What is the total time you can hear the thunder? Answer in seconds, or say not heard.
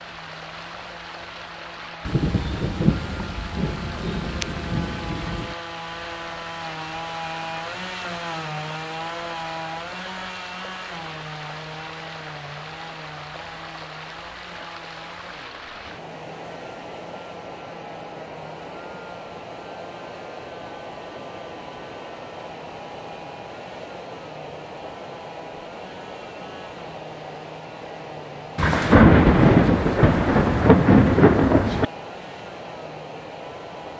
7 s.